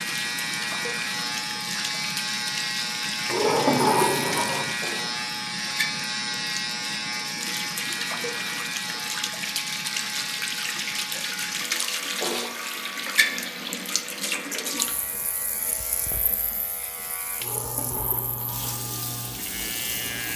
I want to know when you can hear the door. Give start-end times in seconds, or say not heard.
3.2-4.8, 17.4-18.8.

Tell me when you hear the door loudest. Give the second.
4 s.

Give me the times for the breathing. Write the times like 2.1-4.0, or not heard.
not heard.